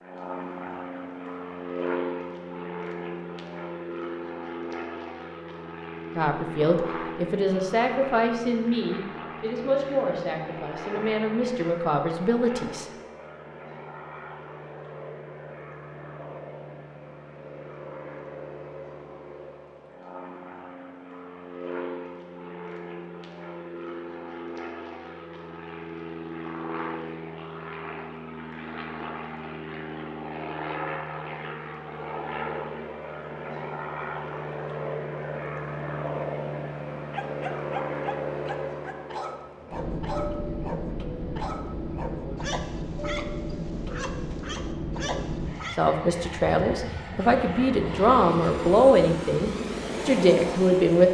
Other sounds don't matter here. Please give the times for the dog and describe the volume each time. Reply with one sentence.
You can hear the dog from 37.1 to 45.8 s, at a steady volume.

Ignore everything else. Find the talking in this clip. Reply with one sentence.
You can hear the talking from 6.2 to 12.8 s and from 45.8 to 51.1 s.